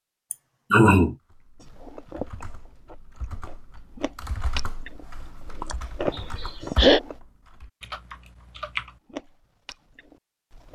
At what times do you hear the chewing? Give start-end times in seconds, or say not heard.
1.6-7.2, 8.8-10.6.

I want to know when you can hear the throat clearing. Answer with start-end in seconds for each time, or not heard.
0.3-1.1, 6.1-7.0.